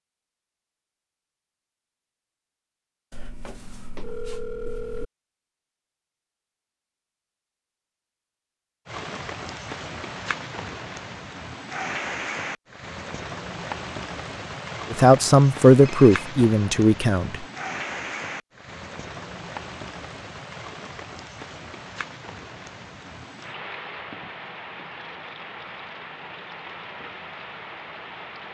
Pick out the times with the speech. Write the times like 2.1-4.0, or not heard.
14.9-17.4.